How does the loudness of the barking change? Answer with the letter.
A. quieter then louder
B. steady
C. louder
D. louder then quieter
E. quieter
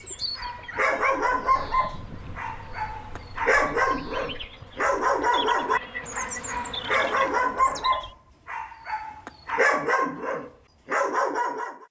B.